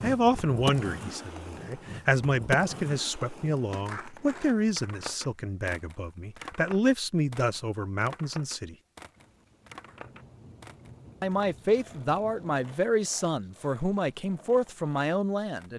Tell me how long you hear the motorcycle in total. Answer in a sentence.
The motorcycle can't be heard in this clip.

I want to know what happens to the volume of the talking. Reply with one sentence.
The loudness of the talking stays about the same.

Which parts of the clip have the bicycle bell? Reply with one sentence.
The bicycle bell can't be heard in this clip.